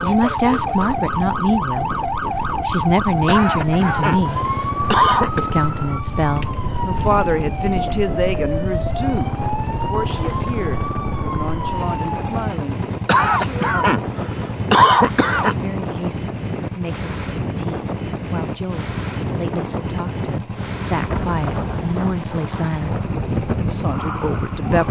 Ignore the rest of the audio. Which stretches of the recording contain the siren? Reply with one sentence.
The siren can be heard from 0.0 to 12.6 s and from 22.9 to 24.8 s.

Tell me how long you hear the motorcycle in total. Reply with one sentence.
The motorcycle can be heard for 25 seconds in total.